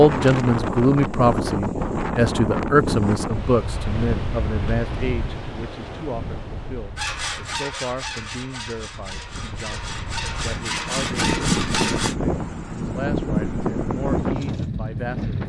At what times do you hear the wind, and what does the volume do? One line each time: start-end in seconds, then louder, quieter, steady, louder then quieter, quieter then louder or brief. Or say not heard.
0.0-15.4 quieter then louder.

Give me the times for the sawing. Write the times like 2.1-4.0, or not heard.
7.0-12.2.